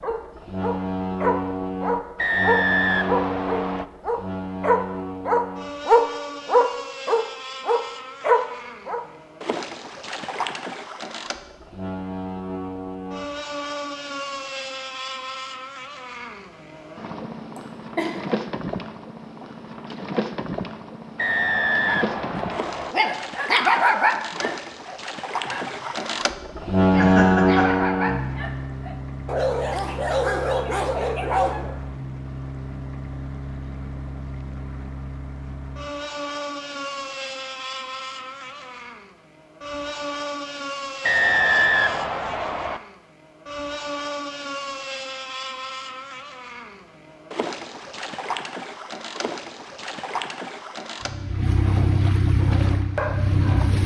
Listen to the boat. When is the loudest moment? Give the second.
27 s.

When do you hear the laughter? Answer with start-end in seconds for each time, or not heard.
17.6-18.2, 26.9-27.7.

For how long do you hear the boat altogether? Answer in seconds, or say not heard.
54 s.